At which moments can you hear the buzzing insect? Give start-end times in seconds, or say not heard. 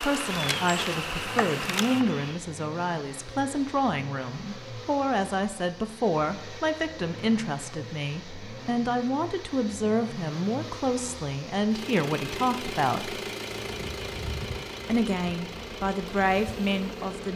0.0-2.4, 13.6-17.3.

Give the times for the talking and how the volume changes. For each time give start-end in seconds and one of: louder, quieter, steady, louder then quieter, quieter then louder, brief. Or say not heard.
0.0-13.2 steady
14.8-17.3 brief.